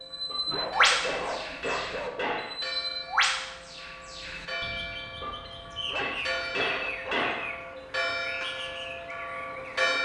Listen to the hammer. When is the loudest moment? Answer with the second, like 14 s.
7 s.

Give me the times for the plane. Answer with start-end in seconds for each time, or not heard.
not heard.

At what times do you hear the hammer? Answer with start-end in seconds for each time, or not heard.
0.2-2.5, 5.2-7.5.